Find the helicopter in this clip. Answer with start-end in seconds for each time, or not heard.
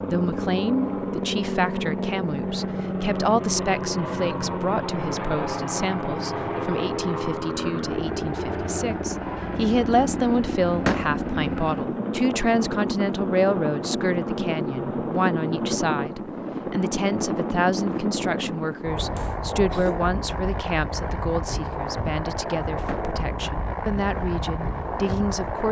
0.0-25.6.